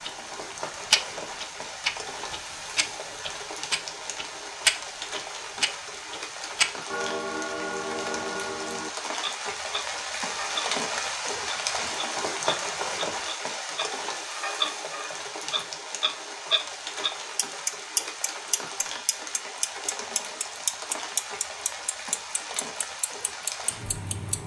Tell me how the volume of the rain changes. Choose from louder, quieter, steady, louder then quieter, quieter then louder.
louder then quieter.